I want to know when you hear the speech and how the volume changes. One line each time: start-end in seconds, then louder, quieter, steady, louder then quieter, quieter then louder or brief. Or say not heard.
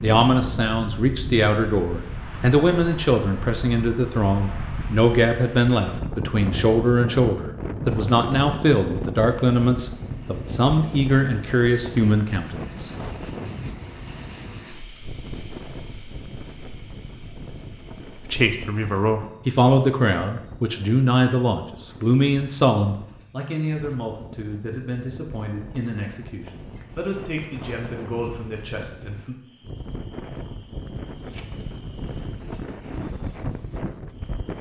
0.0-12.9 steady
18.2-29.4 quieter.